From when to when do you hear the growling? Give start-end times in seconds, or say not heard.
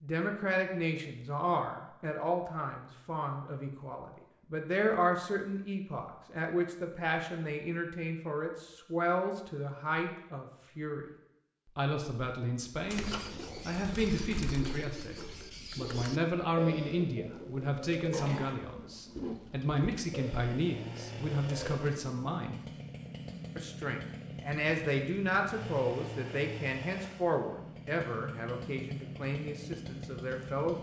18.1-19.4.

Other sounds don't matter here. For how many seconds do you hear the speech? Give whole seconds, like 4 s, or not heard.
29 s.